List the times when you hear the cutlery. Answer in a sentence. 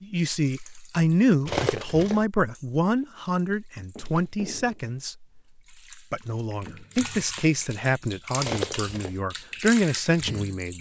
You can hear the cutlery from 1.4 to 2.2 s and from 8.4 to 9.2 s.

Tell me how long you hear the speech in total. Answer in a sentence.
The speech can be heard for 10 seconds in total.